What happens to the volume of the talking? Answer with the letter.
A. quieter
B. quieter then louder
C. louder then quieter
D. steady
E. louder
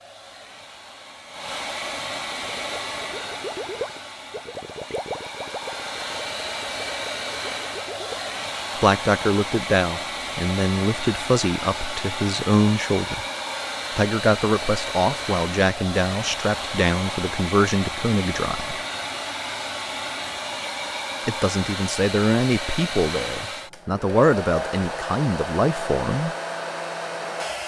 D.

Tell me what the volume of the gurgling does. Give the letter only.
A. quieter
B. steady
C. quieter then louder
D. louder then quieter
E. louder
A.